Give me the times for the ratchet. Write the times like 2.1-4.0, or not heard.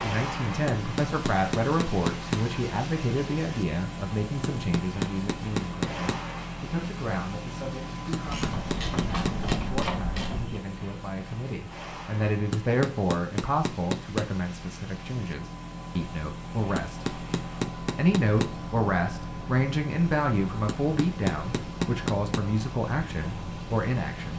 8.2-10.6.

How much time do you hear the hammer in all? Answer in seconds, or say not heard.
11 s.